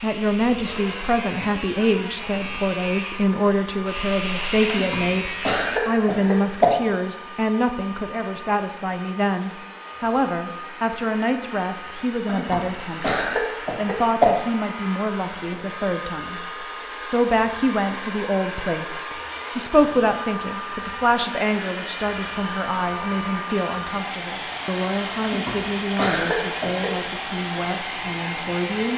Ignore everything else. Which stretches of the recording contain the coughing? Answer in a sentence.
You can hear the coughing from 4.7 to 6.7 s, from 12.2 to 14.3 s and from 25.2 to 26.9 s.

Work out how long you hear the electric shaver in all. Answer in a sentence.
The electric shaver can be heard for 6 seconds in total.